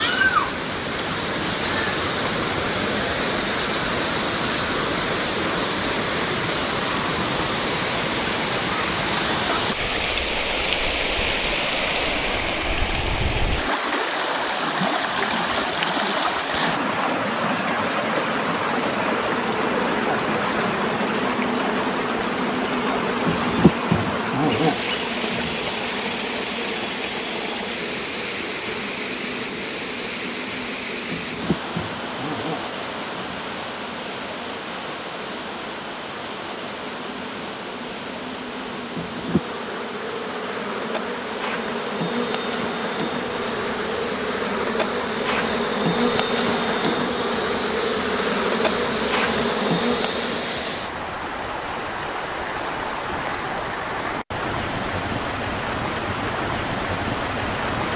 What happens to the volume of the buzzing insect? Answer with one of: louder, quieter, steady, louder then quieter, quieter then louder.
quieter then louder.